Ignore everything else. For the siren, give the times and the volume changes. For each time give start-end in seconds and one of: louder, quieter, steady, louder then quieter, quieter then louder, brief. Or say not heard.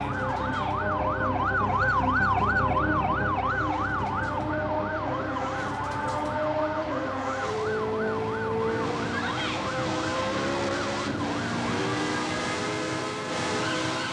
0.0-14.0 quieter.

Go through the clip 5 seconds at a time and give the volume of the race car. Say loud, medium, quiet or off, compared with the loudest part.
medium, loud, loud.